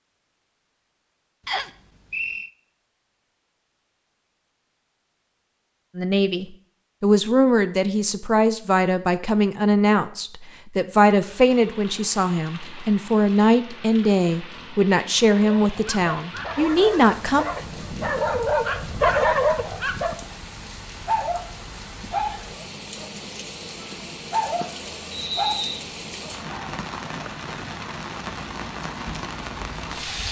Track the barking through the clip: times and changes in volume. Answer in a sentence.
The barking can be heard from 15.3 to 20.2 s, getting louder; briefly from 21.1 to 23.5 s; and briefly from 24.3 to 26.6 s.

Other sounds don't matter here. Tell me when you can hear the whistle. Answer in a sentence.
You can hear the whistle from 1.4 to 2.5 s and from 25.1 to 25.9 s.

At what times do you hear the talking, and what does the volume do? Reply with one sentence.
You can hear the talking from 6.0 to 17.4 s, at a steady volume.